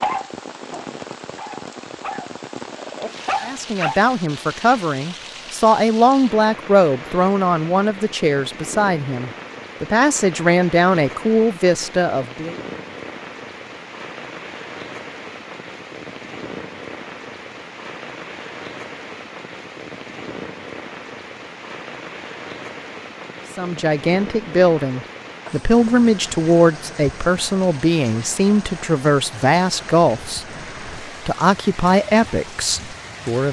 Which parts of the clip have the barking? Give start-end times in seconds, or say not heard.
0.0-4.0.